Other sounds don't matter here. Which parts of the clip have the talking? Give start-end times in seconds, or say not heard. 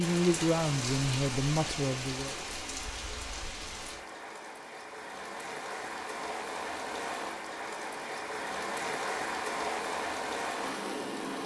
0.0-2.4.